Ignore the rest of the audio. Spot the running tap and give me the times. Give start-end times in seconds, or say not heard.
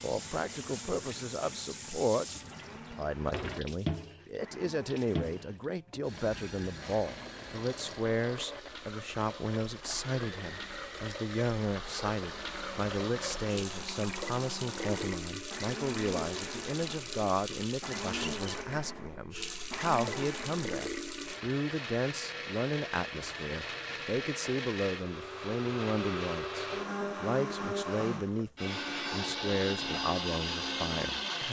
0.0-21.4.